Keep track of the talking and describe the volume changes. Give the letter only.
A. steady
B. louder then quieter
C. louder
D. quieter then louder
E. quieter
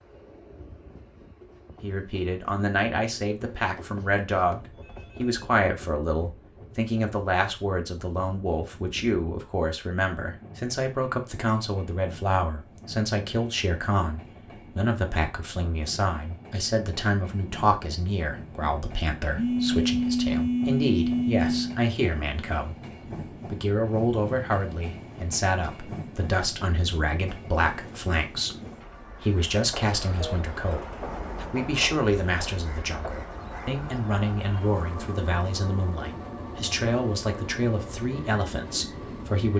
A.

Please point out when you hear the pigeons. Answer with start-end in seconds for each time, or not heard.
not heard.